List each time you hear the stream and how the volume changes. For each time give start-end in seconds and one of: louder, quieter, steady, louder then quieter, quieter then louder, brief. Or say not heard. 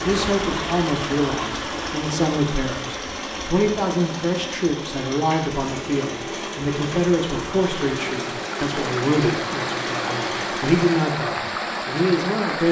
0.0-12.6 quieter then louder.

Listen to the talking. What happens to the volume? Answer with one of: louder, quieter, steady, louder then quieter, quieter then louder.
steady.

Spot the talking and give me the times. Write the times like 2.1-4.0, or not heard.
0.0-12.6.